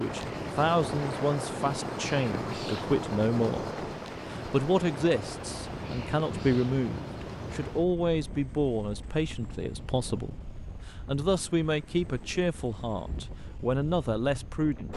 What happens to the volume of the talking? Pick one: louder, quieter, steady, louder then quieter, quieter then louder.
steady.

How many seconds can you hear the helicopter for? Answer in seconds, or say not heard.
15 s.